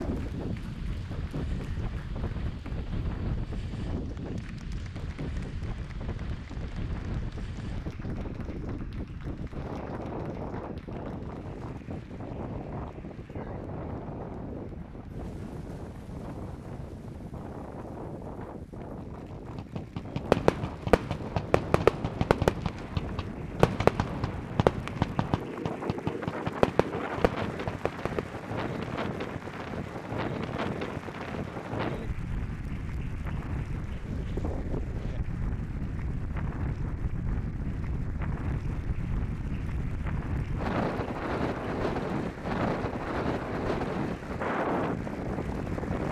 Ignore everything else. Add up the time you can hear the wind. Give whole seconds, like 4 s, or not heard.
46 s.